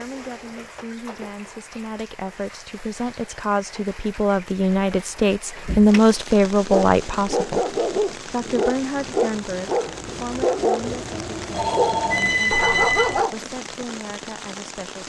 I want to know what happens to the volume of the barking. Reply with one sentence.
The loudness of the barking stays about the same.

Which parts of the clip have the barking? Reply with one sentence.
You can hear the barking from 6.7 to 13.5 s.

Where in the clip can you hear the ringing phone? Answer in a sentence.
You can hear the ringing phone from 11.5 to 13.2 s.